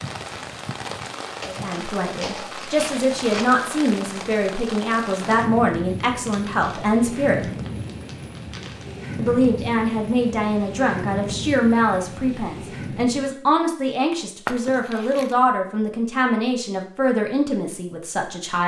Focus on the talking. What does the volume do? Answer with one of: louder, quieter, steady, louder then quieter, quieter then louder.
steady.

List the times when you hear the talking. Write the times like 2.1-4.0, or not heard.
1.4-7.5, 9.2-18.6.